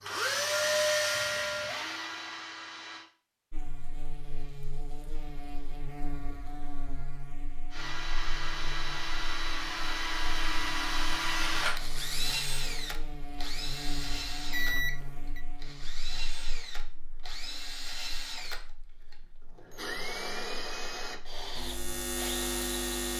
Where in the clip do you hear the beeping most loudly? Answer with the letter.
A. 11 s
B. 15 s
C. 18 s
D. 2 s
B.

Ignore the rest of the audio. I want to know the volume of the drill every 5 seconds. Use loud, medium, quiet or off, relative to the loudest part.
loud, medium, loud, medium, medium.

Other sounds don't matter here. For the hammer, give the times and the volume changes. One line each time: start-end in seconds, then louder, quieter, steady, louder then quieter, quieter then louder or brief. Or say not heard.
not heard.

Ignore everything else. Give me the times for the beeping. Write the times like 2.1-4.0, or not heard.
1.1-1.8, 14.5-15.4.